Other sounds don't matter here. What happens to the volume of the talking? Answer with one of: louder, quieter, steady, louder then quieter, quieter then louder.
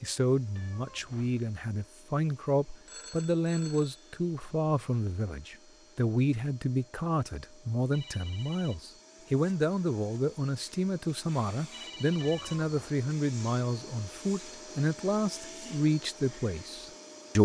steady.